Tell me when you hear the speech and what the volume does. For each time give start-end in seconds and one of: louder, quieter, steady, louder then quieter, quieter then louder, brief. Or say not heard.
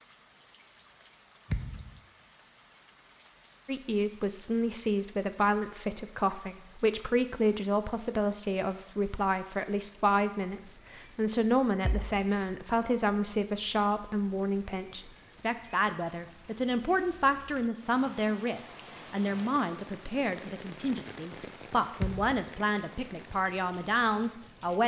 3.6-24.8 steady.